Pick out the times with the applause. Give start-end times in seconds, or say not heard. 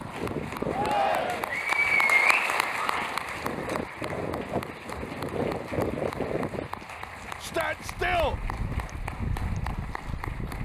0.0-10.6.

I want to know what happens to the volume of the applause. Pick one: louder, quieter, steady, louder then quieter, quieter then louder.
quieter.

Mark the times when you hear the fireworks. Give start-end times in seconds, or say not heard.
not heard.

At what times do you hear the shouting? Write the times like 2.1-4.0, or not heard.
0.7-1.6, 7.4-8.3.